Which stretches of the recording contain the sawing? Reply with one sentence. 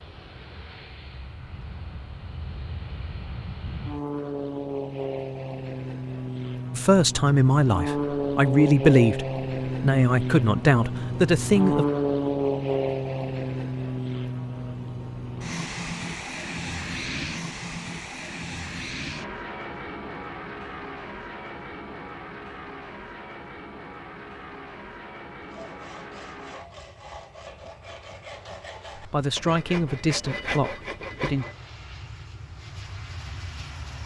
You can hear the sawing from 25.4 to 31.6 s.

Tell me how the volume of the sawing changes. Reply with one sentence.
The loudness of the sawing goes up.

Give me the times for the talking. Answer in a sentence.
You can hear the talking from 6.8 to 11.8 s and from 28.9 to 31.4 s.